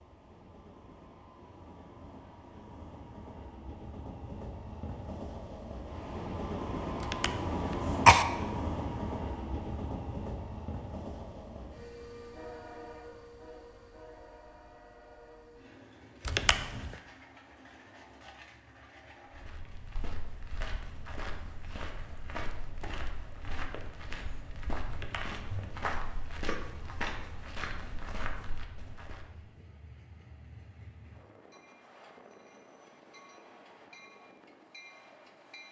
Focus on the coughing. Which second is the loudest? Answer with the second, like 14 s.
8 s.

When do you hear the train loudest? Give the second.
8 s.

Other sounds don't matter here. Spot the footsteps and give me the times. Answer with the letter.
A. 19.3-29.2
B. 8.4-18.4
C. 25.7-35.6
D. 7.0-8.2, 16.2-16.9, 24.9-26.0
A.